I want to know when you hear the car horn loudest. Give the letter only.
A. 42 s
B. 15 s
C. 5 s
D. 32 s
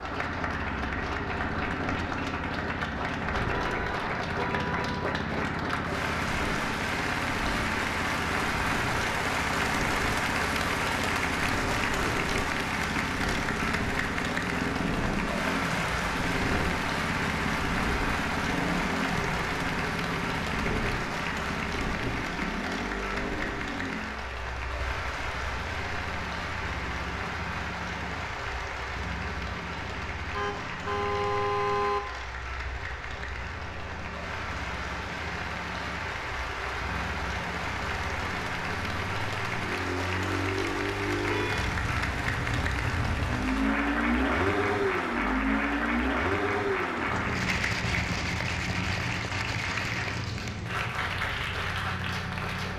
D.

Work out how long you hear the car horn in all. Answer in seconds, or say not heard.
4 s.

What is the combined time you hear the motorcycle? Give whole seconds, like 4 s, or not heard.
53 s.